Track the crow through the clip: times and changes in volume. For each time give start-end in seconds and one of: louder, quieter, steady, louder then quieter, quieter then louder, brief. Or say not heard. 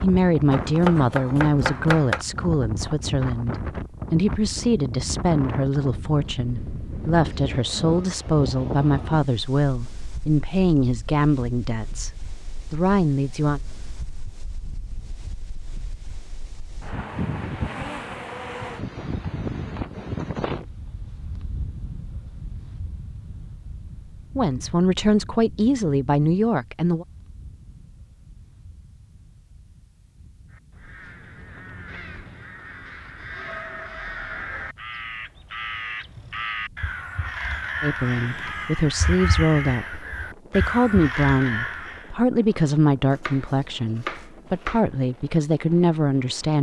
30.5-42.1 louder.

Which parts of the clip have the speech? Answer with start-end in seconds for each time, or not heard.
0.0-12.1, 12.7-13.6, 24.4-27.1, 37.8-46.5.